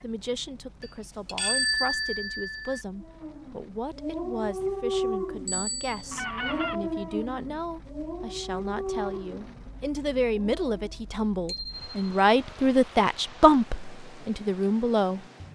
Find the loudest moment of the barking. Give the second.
5 s.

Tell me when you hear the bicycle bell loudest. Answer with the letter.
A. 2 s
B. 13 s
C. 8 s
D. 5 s
A.